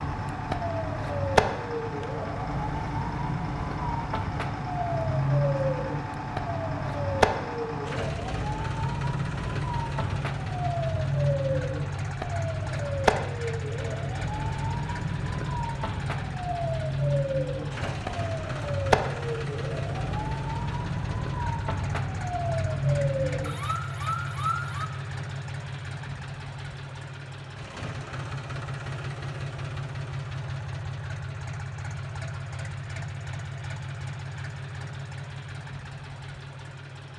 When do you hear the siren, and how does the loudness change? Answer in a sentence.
The siren can be heard from 0.0 to 24.9 s, at a steady volume.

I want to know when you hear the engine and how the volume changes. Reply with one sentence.
The engine can be heard from 0.0 to 37.1 s, at a steady volume.